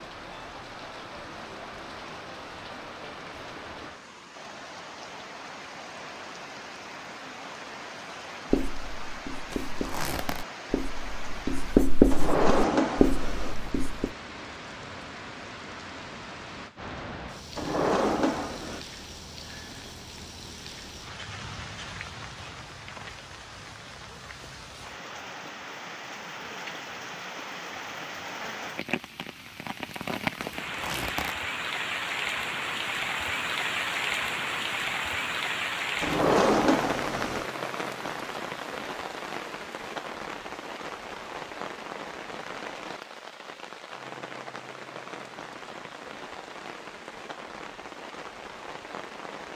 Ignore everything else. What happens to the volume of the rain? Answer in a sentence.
The loudness of the rain goes up, then down.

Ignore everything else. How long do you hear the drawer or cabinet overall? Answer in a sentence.
You can hear the drawer or cabinet for 4 seconds altogether.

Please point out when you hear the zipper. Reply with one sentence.
You can hear the zipper from 9.5 to 10.4 s and from 30.4 to 31.4 s.